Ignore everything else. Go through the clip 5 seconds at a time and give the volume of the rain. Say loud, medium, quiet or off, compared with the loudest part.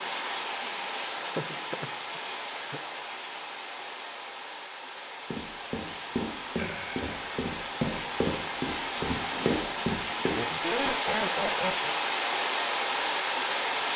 medium, medium, loud.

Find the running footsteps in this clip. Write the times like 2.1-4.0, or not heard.
5.2-10.3.